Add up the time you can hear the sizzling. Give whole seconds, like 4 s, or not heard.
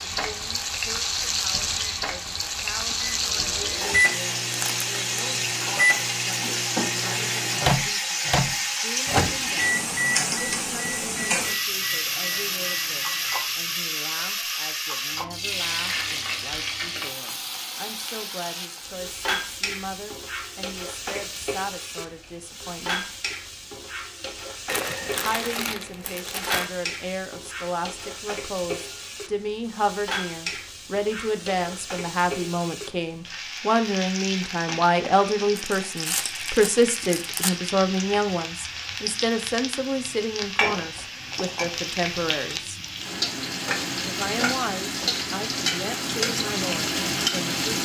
48 s.